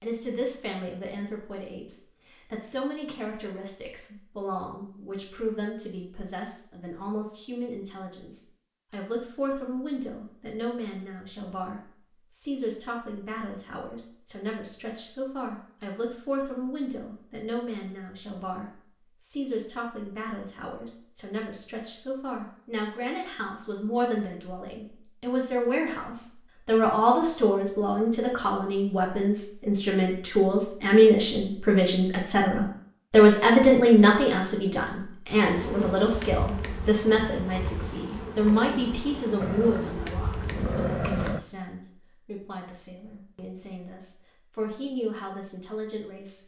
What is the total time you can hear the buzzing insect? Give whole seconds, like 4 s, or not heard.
6 s.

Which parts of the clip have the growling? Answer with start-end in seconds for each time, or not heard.
39.4-41.4.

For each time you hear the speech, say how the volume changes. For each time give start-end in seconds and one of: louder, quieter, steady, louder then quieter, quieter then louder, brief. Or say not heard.
0.0-46.4 louder then quieter.